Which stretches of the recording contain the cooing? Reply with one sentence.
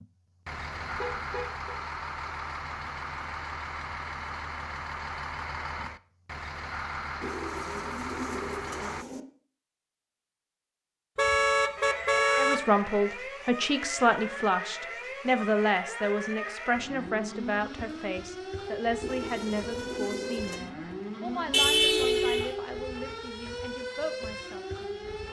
You can hear the cooing from 7.2 to 9.2 s and from 19.0 to 20.6 s.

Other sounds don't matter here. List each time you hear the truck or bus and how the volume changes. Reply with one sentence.
You can hear the truck or bus from 0.0 to 9.1 s, at a steady volume.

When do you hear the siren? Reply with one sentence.
The siren can be heard from 11.8 to 25.2 s.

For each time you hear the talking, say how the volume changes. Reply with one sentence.
The talking can be heard from 12.3 to 25.1 s, getting quieter.